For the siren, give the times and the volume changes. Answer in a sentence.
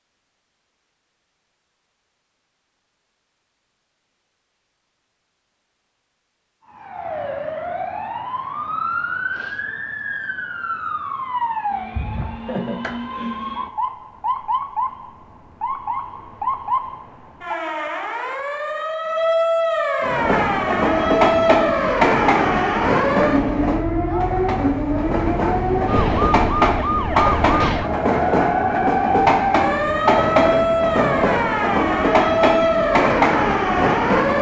The siren can be heard from 6.7 to 34.3 s, getting louder.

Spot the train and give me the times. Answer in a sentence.
You can hear the train from 20.0 to 34.3 s.